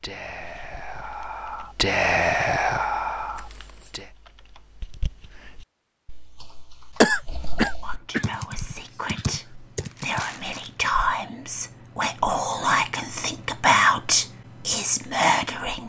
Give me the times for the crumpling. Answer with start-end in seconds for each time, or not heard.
3.4-4.0, 9.8-10.8.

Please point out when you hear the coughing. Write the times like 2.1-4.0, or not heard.
7.0-8.2.